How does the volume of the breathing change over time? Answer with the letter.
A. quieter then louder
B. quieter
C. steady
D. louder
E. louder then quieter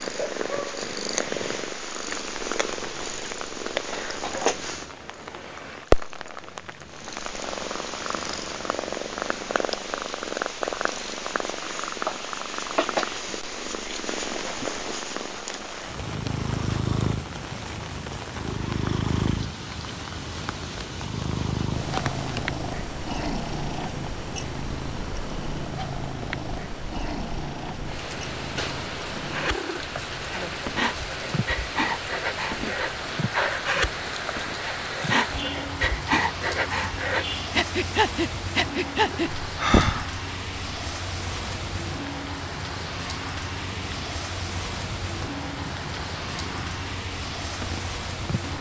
D.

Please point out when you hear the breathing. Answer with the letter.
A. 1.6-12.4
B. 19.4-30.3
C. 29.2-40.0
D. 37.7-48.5
C.